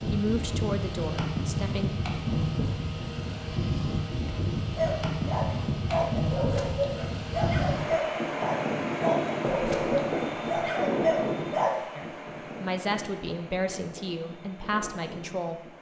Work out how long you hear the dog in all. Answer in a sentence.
You can hear the dog for 7 seconds altogether.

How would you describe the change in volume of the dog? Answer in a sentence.
The volume of the dog stays about the same.